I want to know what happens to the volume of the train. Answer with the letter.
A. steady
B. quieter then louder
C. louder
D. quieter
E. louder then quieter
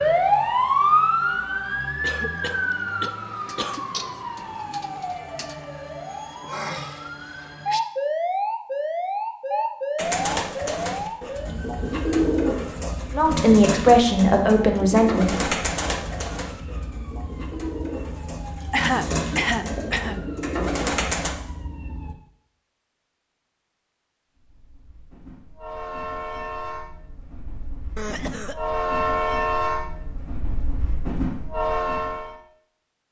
C.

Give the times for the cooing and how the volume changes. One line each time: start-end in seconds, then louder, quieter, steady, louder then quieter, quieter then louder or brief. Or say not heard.
9.9-21.4 quieter then louder.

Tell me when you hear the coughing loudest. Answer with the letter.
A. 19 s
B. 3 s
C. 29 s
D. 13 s
A.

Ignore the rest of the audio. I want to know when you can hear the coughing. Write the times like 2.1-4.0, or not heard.
2.0-3.8, 18.7-20.1, 27.9-28.6.